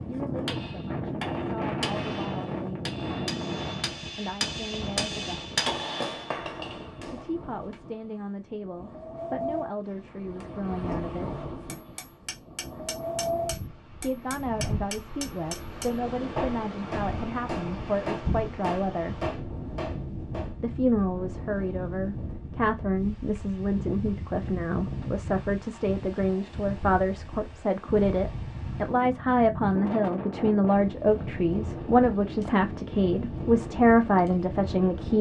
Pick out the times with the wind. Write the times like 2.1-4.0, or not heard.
0.0-35.1.